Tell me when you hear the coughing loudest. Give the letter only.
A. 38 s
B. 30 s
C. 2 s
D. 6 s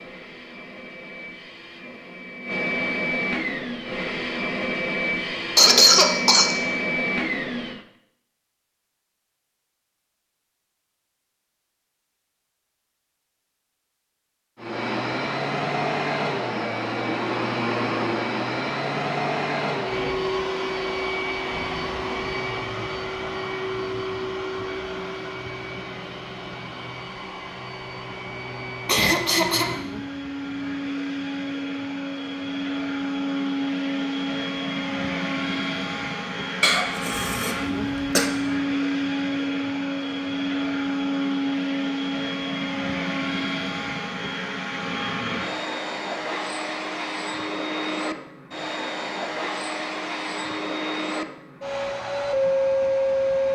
D.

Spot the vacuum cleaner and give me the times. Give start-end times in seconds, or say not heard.
0.0-7.8, 14.6-53.5.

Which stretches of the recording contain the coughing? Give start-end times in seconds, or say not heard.
5.5-6.5, 28.9-29.8, 36.6-38.3.